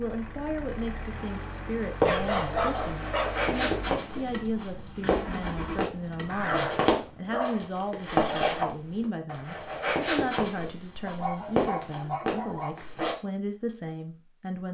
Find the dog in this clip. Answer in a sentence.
You can hear the dog from 2.0 to 3.4 s, from 6.2 to 7.7 s and from 11.1 to 12.7 s.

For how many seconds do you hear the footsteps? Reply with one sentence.
You can hear the footsteps for 11 seconds altogether.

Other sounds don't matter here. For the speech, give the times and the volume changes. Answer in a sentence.
You can hear the speech from 0.0 to 14.6 s, at a steady volume.